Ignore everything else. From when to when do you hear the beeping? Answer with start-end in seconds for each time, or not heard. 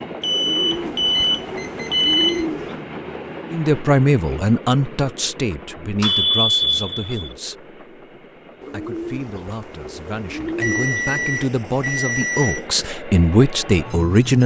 0.2-2.5, 6.0-7.3, 10.6-12.7.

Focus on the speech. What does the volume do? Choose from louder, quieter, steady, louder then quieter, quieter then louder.
quieter then louder.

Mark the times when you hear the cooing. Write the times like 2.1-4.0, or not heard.
0.3-2.9, 8.6-11.4.